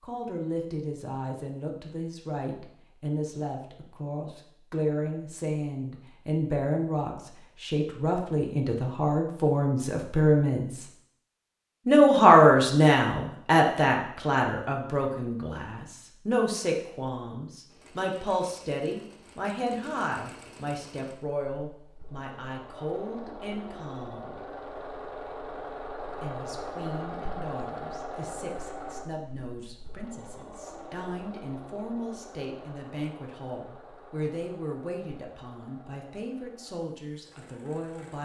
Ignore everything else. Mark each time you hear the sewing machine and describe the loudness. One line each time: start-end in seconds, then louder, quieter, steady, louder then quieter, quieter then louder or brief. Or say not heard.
17.6-38.2 louder then quieter.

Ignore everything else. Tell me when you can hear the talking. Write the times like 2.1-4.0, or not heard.
0.0-10.8, 11.8-24.4, 26.1-38.2.